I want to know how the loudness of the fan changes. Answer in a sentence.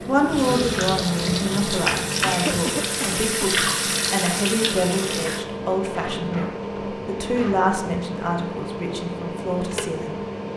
The volume of the fan stays about the same.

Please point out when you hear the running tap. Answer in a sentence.
You can hear the running tap from 0.0 to 5.5 s.